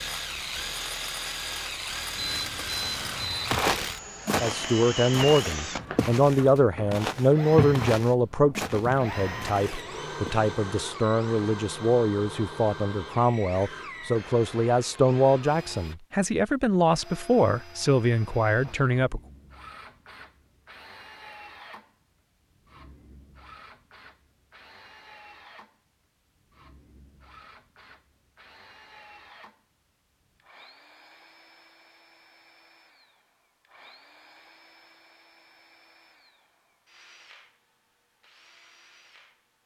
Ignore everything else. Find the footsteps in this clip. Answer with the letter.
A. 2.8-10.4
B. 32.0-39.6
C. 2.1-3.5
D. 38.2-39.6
A.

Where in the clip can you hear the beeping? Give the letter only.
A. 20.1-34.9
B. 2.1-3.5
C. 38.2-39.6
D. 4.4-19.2
B.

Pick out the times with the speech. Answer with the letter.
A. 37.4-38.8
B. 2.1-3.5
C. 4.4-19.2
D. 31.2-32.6
C.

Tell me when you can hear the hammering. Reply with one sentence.
The hammering can't be heard in this clip.